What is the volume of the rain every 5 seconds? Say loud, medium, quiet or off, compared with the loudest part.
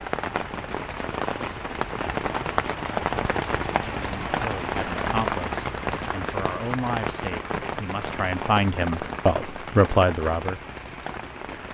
loud, loud, medium.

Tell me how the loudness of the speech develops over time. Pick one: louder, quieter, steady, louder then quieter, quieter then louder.
louder.